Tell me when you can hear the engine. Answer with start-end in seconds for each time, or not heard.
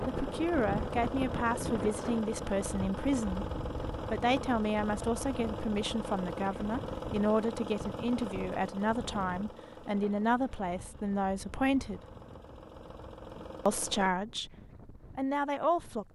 0.0-14.1.